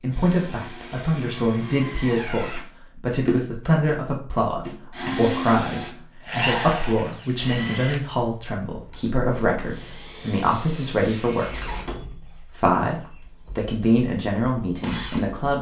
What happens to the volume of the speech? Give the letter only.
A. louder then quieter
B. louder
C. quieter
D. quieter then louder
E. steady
E.